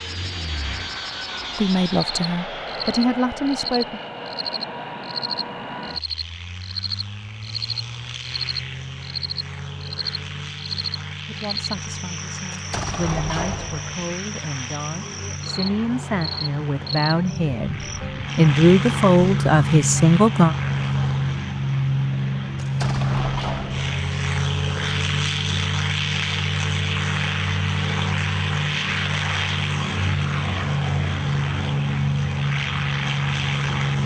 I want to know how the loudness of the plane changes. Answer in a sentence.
The volume of the plane goes up.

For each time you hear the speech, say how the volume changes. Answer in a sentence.
The speech can be heard briefly from 1.6 to 4.0 s; and from 11.2 to 20.6 s, getting louder.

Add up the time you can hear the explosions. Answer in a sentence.
You can hear the explosions for 3 seconds altogether.